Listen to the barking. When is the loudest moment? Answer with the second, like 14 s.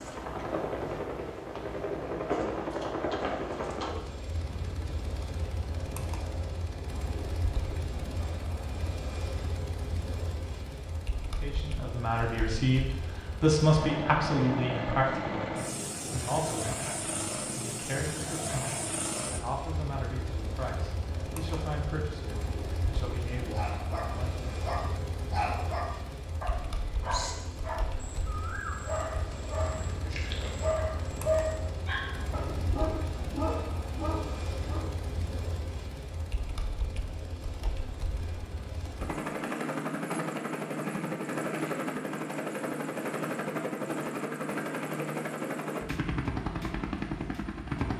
31 s.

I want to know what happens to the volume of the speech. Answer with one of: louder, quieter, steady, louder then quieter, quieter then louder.
quieter.